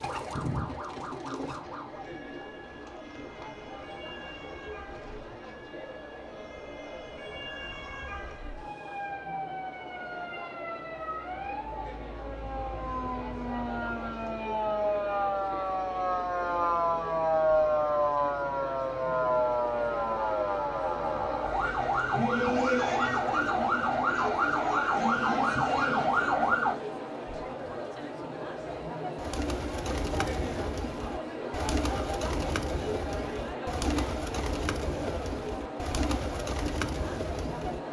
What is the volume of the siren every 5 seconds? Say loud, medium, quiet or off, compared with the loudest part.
quiet, quiet, medium, loud, loud, loud, off, off.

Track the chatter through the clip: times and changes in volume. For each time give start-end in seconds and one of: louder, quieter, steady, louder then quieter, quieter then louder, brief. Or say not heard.
0.0-37.8 louder.